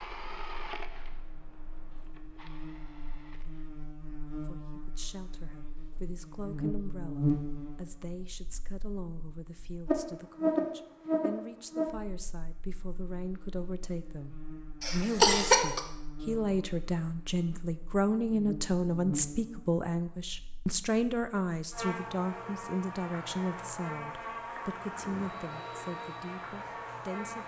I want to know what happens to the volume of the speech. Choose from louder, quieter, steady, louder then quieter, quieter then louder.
louder then quieter.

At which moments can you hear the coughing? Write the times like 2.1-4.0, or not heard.
14.8-15.8.